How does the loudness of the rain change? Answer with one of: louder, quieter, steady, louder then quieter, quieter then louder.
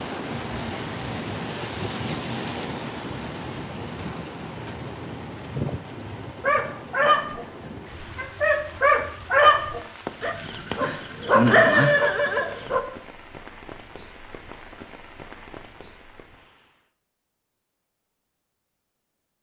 quieter.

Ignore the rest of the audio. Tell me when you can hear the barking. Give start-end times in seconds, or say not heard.
6.4-12.8.